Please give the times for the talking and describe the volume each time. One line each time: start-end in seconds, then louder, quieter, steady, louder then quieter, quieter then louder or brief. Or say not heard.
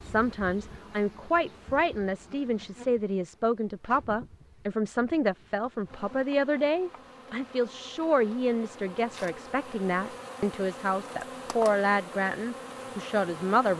0.0-13.7 steady.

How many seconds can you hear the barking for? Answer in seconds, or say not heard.
not heard.